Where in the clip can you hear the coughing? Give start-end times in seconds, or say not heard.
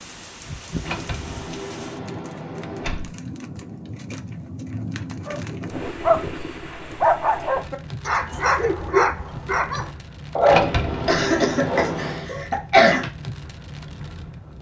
11.1-13.1.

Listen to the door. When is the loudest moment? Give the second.
11 s.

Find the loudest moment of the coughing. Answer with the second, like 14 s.
13 s.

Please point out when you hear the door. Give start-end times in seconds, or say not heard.
0.8-3.1, 10.4-12.3.